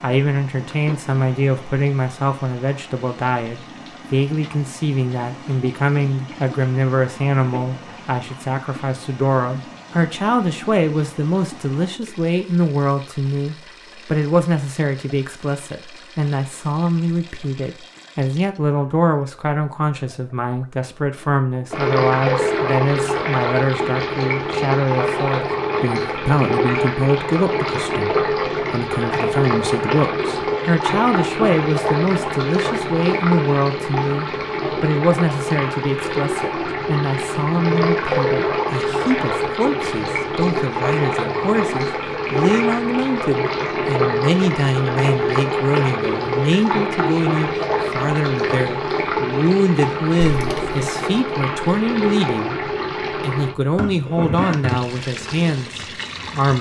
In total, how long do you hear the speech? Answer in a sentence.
You can hear the speech for 56 seconds altogether.